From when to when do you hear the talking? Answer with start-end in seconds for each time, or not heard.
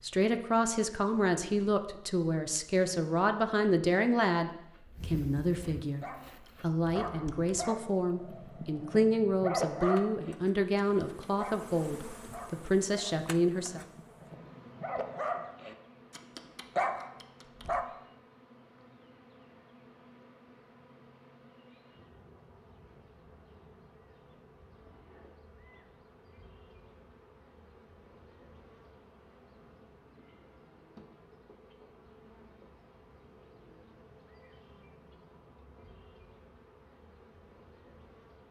0.0-13.8.